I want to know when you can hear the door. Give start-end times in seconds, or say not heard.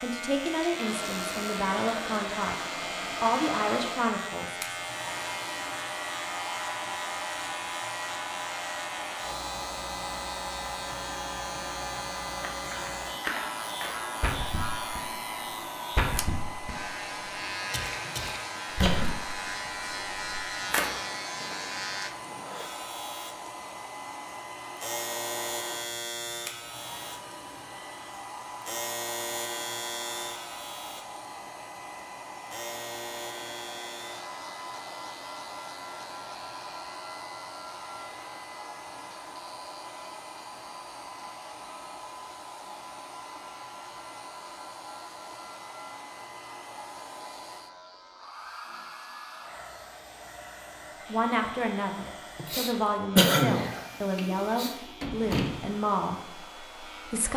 54.1-55.8.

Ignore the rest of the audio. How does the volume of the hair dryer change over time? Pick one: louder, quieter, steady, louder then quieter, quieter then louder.
quieter.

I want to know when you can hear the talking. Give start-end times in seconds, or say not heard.
0.0-2.5, 3.2-4.8, 51.0-57.3.